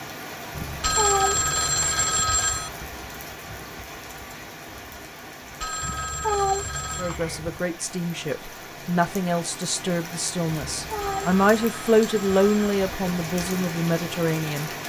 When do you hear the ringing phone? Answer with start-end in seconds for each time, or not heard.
0.8-2.7, 5.6-7.2, 11.0-12.7.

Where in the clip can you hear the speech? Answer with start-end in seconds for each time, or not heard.
7.0-14.7.